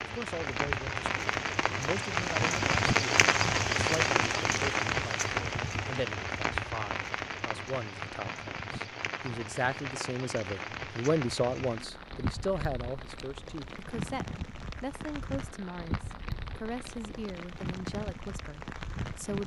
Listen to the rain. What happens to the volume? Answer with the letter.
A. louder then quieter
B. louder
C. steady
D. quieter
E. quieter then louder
D.